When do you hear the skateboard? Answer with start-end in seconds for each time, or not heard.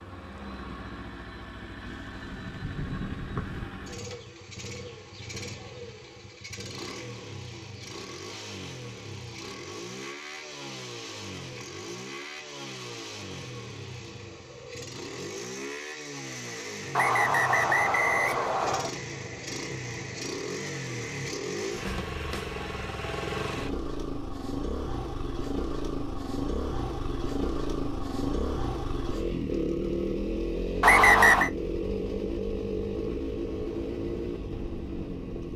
not heard.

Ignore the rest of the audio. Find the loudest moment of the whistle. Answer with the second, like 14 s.
31 s.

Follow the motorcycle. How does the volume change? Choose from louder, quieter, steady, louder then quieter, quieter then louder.
louder.